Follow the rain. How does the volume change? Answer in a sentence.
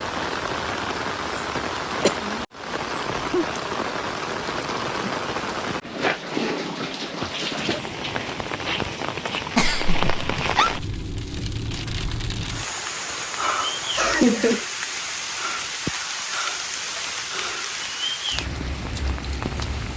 The loudness of the rain stays about the same.